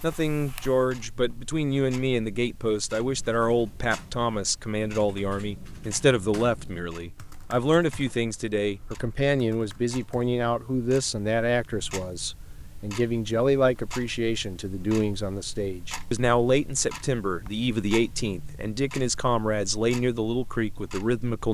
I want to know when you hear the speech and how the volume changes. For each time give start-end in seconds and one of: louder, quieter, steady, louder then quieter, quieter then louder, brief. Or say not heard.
0.0-21.4 steady.